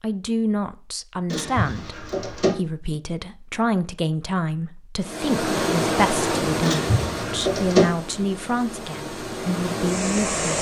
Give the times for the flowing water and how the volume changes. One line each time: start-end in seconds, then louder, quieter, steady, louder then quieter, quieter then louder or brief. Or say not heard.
5.0-10.5 quieter then louder.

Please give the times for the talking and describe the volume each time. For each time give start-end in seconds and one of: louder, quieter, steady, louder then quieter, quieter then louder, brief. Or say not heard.
0.0-10.4 steady.